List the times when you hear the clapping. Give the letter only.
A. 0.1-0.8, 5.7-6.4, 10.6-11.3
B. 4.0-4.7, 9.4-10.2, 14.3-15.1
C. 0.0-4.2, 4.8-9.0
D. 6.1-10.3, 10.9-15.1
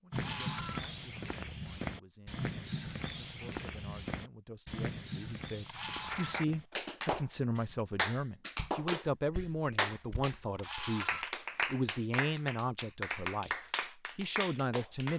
D.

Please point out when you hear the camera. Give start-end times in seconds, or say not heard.
0.1-0.8, 5.7-6.4, 10.6-11.3.